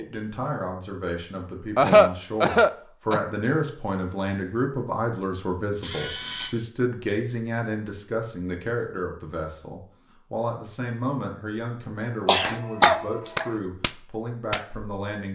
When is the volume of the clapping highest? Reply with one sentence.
The loudest moment of the clapping is at 13 seconds.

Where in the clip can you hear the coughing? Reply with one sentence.
You can hear the coughing from 1.8 to 3.2 s and from 12.2 to 13.5 s.